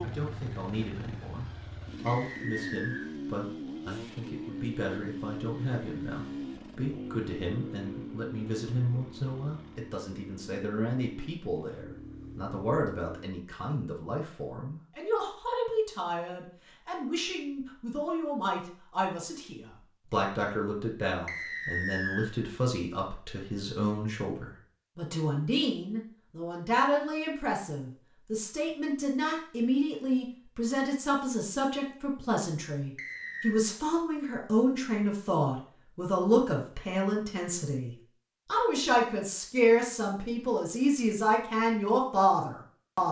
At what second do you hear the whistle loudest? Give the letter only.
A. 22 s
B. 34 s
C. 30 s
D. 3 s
A.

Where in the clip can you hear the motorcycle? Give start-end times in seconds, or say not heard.
0.0-13.3.